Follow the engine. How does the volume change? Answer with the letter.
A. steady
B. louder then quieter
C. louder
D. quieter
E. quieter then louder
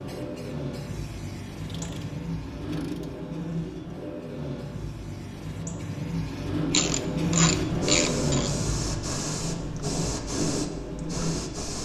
B.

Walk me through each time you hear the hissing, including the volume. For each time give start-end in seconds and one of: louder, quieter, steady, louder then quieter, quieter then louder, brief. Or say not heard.
0.0-11.8 quieter then louder.